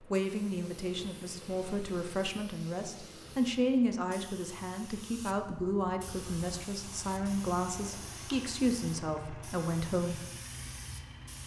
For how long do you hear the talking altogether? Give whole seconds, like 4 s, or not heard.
10 s.